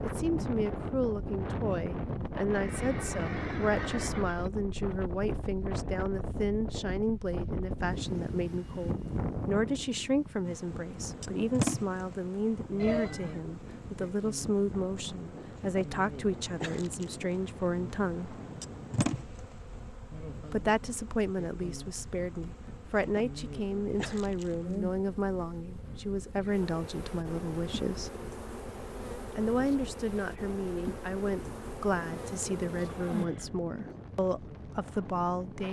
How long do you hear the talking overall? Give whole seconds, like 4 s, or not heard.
32 s.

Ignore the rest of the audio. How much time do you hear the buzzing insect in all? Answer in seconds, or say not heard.
23 s.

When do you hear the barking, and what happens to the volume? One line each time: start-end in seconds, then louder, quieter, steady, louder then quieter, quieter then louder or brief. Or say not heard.
not heard.